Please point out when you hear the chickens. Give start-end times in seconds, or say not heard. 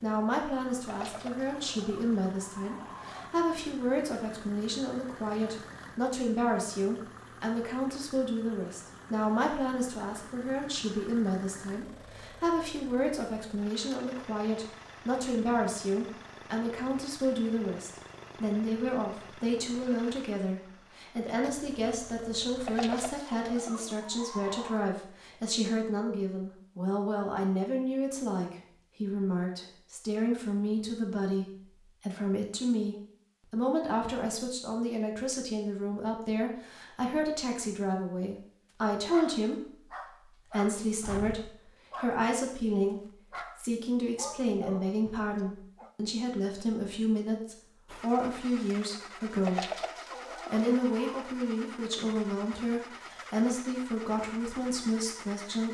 0.8-3.3, 22.6-24.9, 49.5-51.2.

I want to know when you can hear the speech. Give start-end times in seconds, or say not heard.
0.0-49.7, 50.5-55.6.